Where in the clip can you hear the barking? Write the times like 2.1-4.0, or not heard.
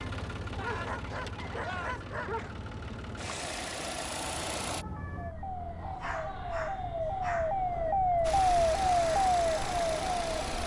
0.6-2.5, 5.8-7.5.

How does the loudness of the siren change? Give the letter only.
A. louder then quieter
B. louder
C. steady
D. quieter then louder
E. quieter
B.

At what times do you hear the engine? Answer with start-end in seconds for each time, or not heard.
0.0-4.8, 8.2-10.6.